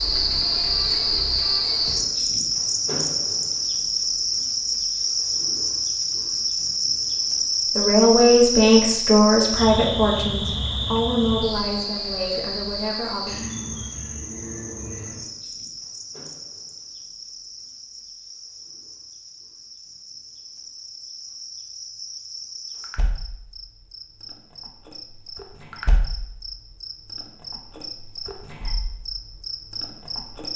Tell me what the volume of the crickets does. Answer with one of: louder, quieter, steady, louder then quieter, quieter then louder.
quieter.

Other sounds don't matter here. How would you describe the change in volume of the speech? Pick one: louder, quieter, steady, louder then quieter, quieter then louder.
quieter.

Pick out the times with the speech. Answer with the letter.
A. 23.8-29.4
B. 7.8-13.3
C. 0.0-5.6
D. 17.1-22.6
B.